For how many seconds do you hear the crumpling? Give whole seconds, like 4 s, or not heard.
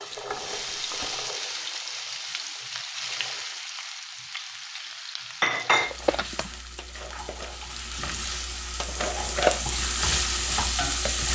2 s.